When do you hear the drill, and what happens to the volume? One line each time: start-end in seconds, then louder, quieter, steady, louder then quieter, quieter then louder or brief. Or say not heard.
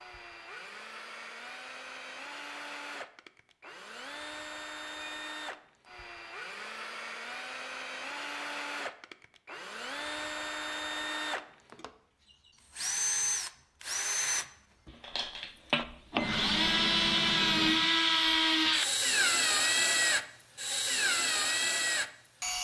0.0-22.5 louder.